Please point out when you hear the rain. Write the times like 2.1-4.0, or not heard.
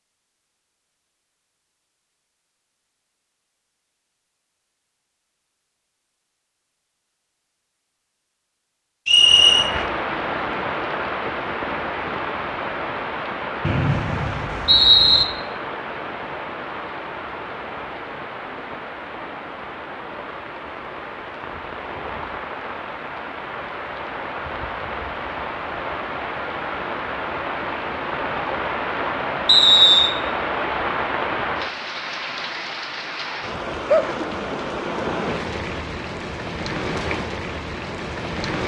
9.1-38.6.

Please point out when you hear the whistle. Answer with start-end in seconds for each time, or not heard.
9.1-9.7, 13.6-15.2, 29.4-30.1.